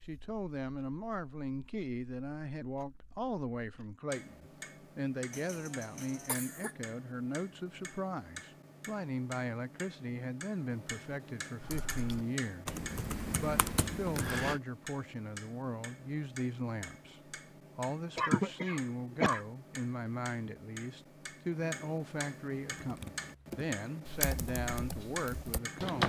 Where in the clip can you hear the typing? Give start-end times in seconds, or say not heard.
11.6-14.6, 22.8-26.0.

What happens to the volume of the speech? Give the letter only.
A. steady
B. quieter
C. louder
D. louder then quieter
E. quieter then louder
A.